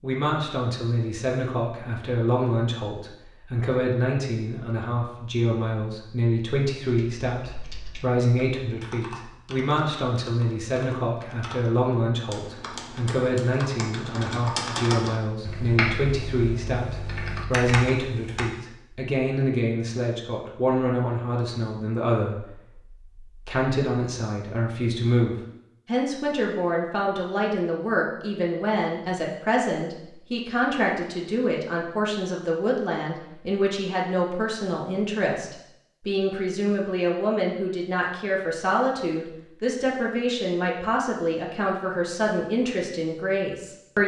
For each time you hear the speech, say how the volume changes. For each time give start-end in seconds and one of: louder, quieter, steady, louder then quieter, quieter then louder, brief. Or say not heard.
0.0-44.0 steady.